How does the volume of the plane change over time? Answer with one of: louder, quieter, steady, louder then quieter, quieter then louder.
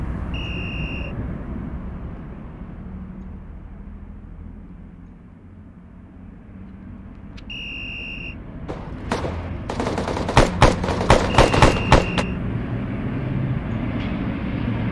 quieter then louder.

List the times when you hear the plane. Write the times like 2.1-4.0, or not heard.
0.0-14.8.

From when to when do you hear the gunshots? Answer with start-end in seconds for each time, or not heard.
8.7-12.2.